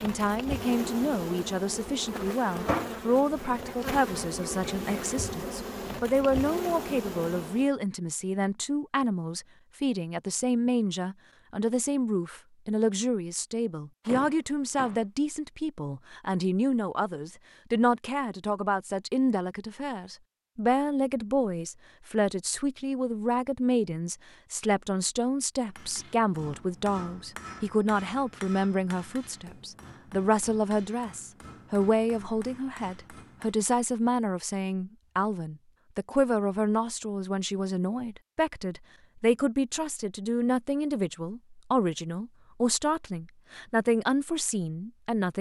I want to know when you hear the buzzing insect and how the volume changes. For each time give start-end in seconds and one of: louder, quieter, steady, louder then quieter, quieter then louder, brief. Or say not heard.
0.0-7.7 steady.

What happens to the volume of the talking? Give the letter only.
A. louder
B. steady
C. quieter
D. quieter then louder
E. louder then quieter
B.